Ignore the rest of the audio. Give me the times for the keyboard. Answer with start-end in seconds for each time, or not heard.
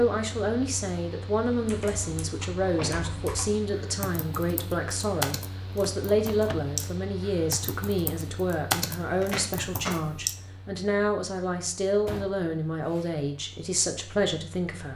1.5-10.3.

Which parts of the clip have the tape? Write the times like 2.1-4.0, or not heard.
9.0-9.9.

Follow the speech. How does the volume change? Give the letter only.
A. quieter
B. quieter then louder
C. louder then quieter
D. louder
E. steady
E.